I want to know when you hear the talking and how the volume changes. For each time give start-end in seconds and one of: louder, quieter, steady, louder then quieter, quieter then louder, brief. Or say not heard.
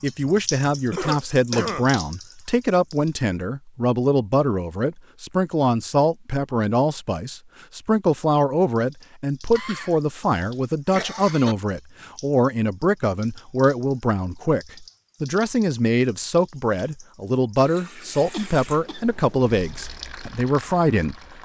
0.0-21.1 steady.